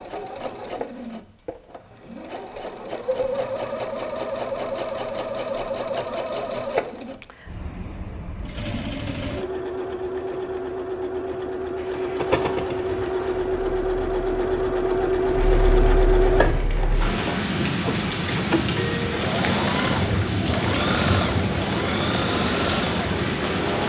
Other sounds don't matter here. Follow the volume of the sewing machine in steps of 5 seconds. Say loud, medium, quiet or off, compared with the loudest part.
medium, medium, loud, loud, loud.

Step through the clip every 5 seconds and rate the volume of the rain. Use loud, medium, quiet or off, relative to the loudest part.
off, off, quiet, loud, loud.